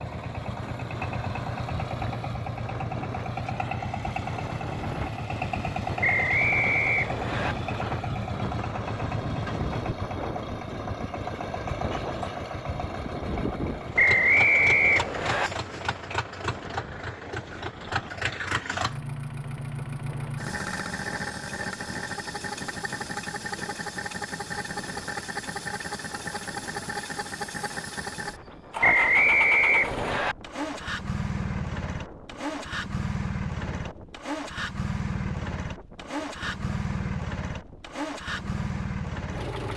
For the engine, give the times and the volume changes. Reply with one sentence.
The engine can be heard from 0.0 to 39.7 s, at a steady volume.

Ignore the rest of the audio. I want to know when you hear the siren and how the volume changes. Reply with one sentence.
The siren can't be heard in this clip.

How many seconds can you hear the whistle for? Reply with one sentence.
The whistle can be heard for 5 seconds in total.